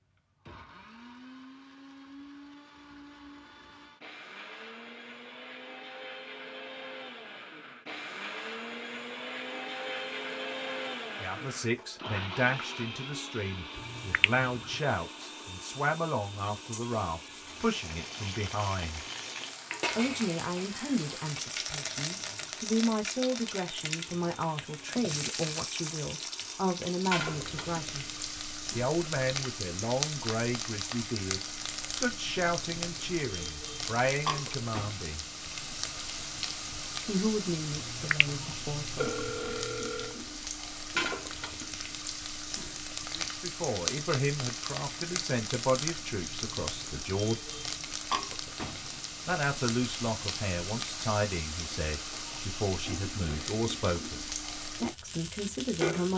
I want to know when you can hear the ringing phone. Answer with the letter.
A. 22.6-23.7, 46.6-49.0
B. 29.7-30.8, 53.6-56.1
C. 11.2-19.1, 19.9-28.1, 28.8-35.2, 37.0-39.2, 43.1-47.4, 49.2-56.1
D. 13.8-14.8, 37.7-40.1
D.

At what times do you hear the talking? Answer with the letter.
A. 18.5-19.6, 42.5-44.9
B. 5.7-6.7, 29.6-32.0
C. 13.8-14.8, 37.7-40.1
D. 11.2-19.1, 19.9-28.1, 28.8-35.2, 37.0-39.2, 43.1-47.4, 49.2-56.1
D.